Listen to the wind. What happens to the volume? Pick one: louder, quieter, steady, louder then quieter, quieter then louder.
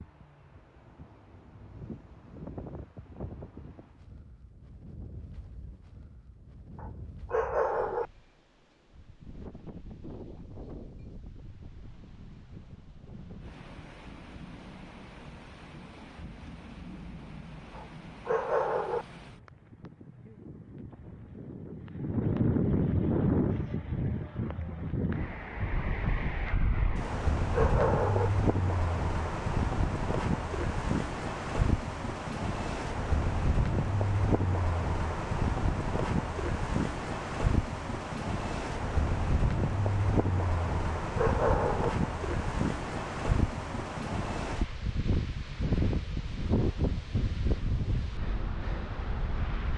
louder.